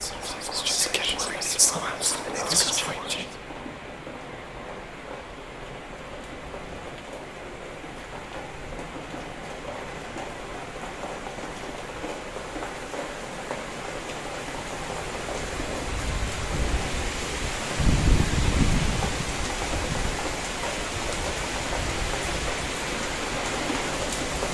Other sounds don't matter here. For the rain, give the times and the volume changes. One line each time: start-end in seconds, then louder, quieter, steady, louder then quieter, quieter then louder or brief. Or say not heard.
0.0-24.4 louder.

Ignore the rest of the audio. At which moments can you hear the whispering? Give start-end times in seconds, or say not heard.
0.0-3.2.